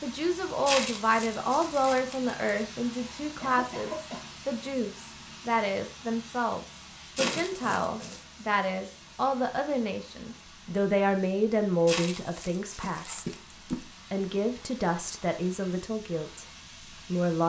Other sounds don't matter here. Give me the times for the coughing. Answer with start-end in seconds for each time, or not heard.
3.4-4.2, 7.2-8.2, 12.8-13.8.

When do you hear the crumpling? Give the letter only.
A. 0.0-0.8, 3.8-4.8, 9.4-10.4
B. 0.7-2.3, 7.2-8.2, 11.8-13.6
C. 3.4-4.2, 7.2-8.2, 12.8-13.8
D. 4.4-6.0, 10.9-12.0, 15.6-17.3
B.